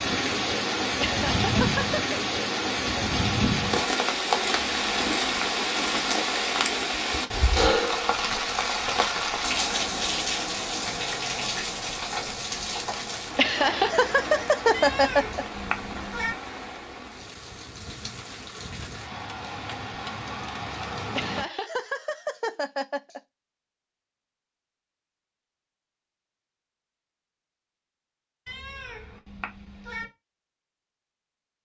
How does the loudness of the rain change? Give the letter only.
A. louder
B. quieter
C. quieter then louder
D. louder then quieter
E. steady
B.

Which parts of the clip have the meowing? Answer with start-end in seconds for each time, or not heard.
4.4-5.5, 14.7-16.4, 28.4-30.1.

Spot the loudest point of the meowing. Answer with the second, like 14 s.
16 s.